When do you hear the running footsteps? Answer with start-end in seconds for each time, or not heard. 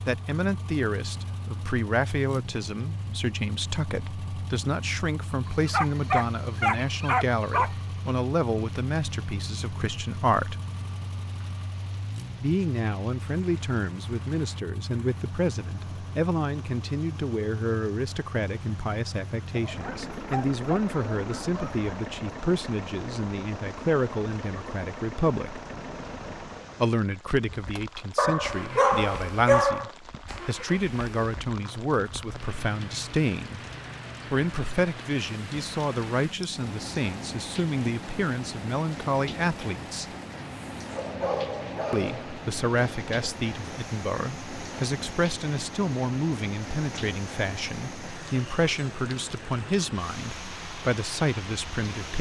not heard.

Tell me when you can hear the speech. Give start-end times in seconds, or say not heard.
0.1-10.6, 12.4-25.6, 26.8-33.6, 34.3-40.0, 41.9-52.1.